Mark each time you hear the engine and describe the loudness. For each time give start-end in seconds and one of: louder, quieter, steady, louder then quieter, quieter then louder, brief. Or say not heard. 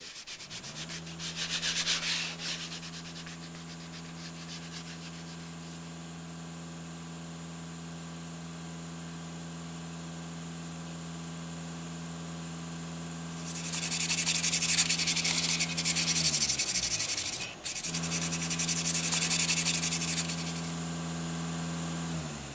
0.0-22.5 louder.